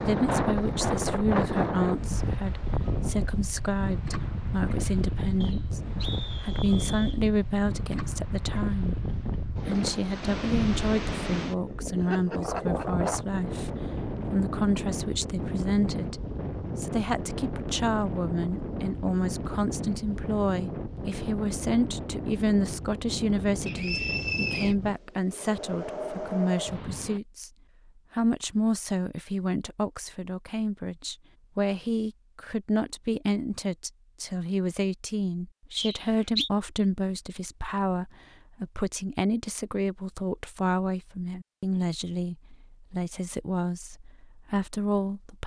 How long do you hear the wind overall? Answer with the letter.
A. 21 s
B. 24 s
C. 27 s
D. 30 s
C.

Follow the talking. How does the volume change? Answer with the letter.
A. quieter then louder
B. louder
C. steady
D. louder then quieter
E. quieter
C.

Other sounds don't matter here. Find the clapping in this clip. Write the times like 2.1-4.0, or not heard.
not heard.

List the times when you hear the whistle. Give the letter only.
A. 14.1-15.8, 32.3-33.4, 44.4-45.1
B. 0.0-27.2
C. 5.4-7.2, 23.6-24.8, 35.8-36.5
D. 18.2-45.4
C.